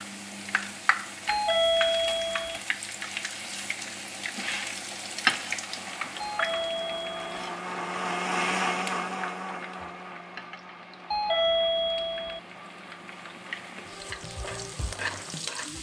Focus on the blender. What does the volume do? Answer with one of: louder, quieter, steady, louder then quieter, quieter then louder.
louder then quieter.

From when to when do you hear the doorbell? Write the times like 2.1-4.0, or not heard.
1.2-2.6, 6.2-7.5, 11.1-12.4.